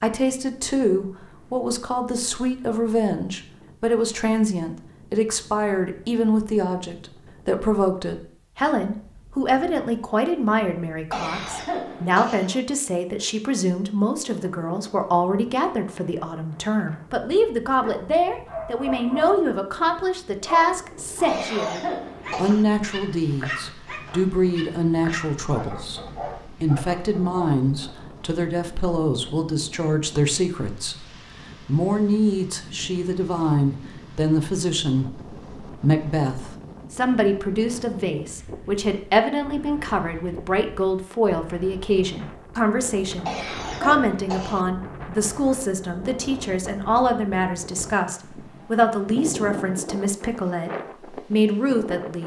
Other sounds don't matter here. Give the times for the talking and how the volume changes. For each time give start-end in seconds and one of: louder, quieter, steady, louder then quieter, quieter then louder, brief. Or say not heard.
0.0-52.2 steady.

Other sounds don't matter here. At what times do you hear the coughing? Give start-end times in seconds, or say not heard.
11.1-12.5, 21.2-22.6, 43.2-44.6.